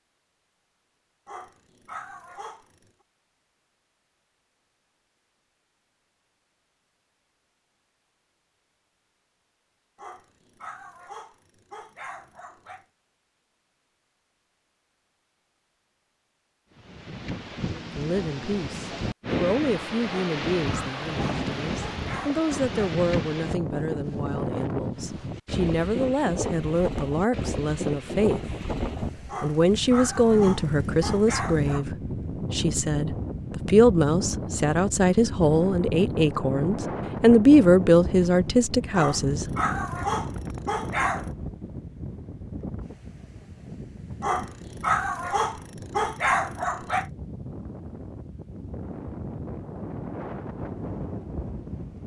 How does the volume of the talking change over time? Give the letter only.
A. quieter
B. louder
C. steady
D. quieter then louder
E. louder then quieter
B.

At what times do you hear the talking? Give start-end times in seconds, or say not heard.
17.9-28.4, 29.4-39.5.